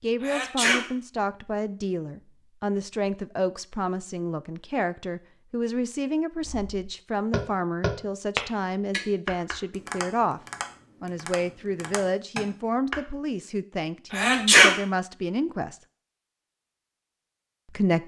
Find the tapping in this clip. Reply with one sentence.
The tapping can be heard from 6.5 to 13.0 s.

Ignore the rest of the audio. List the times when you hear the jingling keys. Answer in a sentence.
The jingling keys can't be heard in this clip.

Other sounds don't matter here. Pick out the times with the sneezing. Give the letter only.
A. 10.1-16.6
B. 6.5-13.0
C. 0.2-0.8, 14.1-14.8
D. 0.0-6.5
C.